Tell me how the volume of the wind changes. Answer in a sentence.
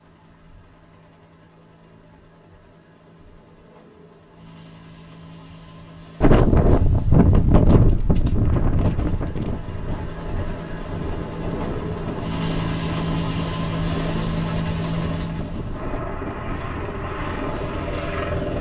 The loudness of the wind goes down.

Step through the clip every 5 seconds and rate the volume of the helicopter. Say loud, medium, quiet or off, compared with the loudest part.
quiet, quiet, loud, loud.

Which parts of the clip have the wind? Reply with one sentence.
You can hear the wind from 6.2 to 18.5 s.